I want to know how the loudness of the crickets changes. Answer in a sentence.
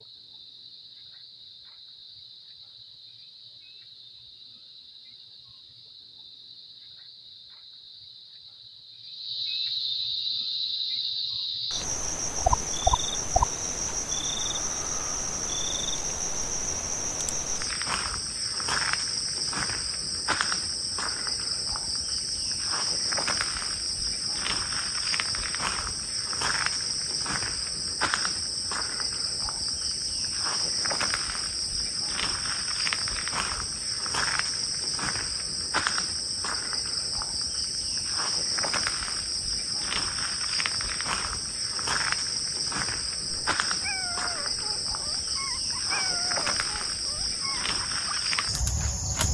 The volume of the crickets goes up.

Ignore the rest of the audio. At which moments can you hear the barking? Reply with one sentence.
The barking can be heard from 43.2 to 48.2 s.